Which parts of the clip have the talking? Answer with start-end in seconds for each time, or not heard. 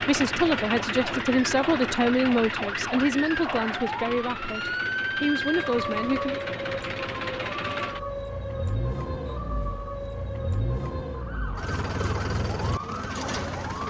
0.0-6.4.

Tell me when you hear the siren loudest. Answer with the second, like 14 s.
5 s.